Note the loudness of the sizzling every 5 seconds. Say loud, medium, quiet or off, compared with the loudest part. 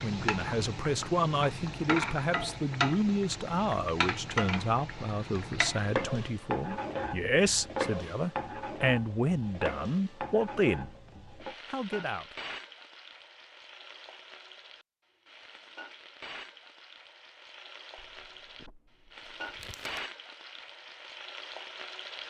loud, loud, medium, medium, medium.